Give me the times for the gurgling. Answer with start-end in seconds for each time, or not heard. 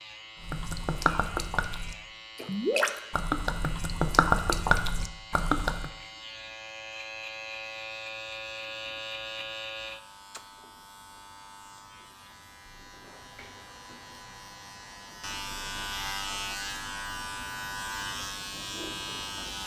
0.4-5.9.